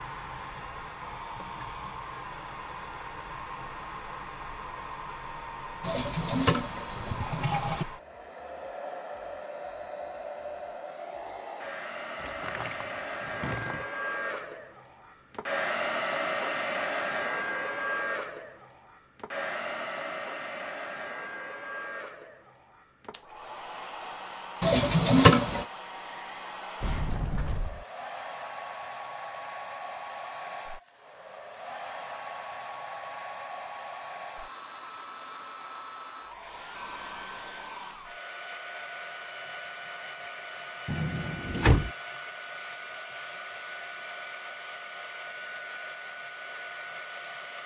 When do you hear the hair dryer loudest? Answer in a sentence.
The loudest moment of the hair dryer is at 16 seconds.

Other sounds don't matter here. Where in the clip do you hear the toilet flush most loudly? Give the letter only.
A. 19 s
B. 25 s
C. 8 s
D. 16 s
B.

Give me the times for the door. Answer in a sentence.
You can hear the door from 12.2 to 13.8 s, from 26.8 to 27.9 s and from 40.9 to 41.9 s.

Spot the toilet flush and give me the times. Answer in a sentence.
The toilet flush can be heard from 5.8 to 7.8 s and from 24.6 to 25.6 s.